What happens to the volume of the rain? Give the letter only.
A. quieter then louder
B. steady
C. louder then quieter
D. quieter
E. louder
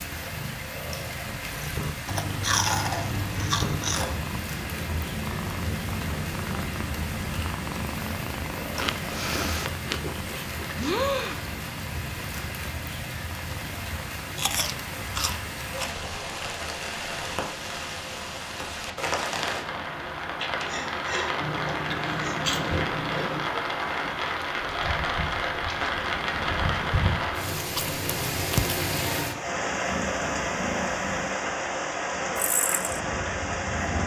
E.